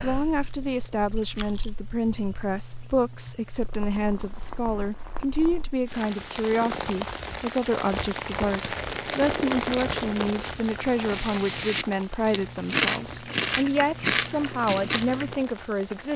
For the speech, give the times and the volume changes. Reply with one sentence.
You can hear the speech from 0.0 to 16.1 s, at a steady volume.